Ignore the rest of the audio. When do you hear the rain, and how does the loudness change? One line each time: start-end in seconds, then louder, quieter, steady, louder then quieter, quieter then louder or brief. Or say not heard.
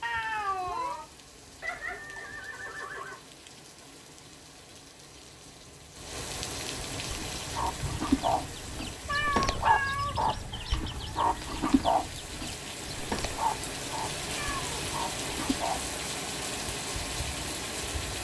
0.0-18.2 louder.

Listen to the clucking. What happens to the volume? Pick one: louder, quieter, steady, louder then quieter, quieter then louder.
quieter.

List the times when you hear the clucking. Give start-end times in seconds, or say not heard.
7.0-15.9.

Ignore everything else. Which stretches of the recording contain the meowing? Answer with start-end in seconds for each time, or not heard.
0.0-1.1, 9.1-10.2, 14.3-14.8.